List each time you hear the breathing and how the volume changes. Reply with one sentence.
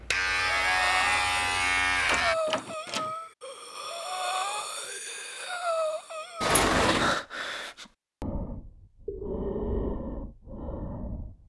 The breathing can be heard from 0.3 to 11.4 s, at a steady volume.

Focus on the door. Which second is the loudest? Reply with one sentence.
The loudest moment of the door is at 7 seconds.